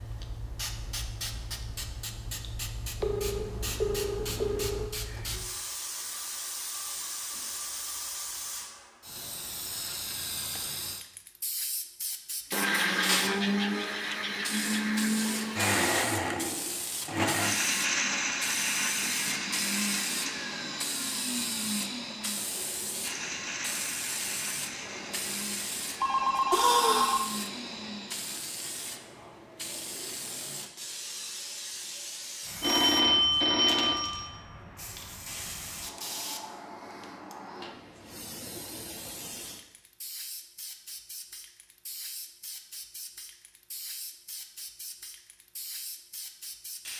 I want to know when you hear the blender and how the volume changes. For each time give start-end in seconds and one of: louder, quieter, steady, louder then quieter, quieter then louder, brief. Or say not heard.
12.5-28.3 quieter.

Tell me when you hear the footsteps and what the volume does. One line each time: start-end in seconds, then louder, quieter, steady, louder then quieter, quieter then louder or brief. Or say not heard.
not heard.